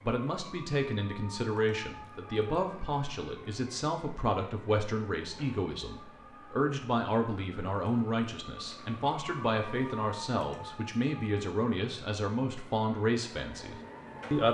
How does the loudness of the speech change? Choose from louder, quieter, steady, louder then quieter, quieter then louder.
steady.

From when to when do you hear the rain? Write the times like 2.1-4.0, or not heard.
not heard.